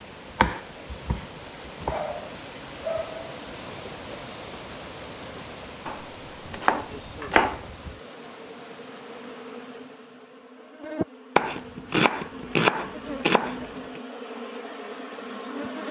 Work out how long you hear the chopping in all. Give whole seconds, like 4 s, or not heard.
6 s.